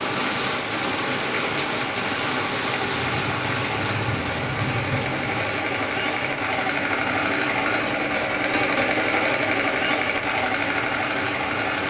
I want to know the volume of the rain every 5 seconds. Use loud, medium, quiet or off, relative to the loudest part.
loud, medium, medium.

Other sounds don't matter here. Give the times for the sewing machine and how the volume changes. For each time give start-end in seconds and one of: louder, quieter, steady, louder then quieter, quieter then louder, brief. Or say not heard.
0.1-11.8 louder.